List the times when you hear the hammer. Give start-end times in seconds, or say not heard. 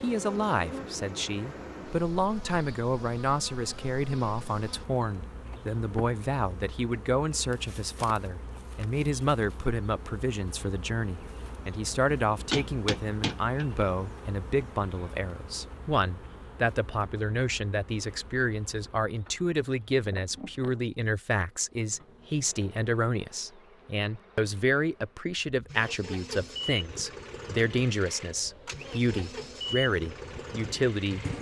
12.5-13.8.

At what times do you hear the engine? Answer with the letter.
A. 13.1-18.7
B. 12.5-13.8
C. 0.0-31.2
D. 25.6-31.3
D.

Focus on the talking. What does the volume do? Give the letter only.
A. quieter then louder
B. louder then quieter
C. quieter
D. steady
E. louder
D.